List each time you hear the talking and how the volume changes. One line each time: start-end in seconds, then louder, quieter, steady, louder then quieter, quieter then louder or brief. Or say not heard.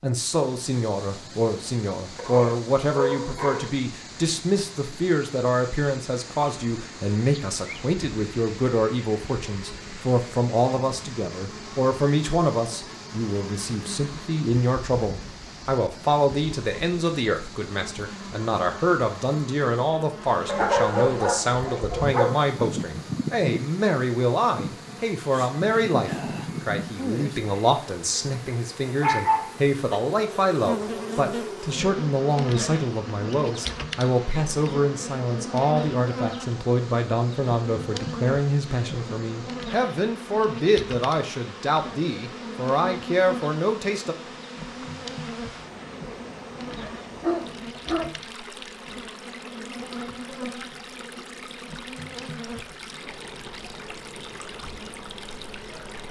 0.0-44.1 steady.